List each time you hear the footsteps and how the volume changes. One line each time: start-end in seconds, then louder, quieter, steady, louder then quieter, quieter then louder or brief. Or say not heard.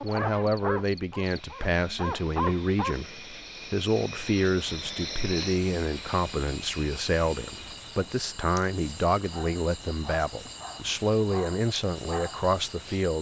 not heard.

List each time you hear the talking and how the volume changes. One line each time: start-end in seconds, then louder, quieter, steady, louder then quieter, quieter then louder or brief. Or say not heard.
0.0-13.1 steady.